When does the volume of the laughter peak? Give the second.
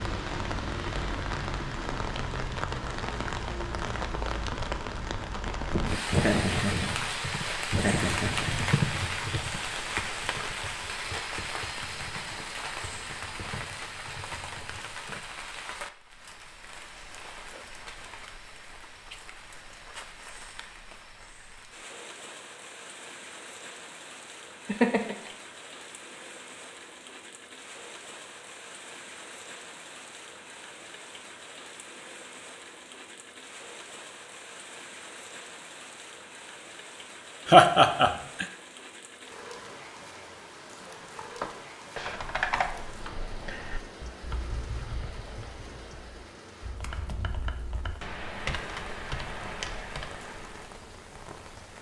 38 s.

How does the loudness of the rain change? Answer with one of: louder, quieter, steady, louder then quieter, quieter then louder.
quieter.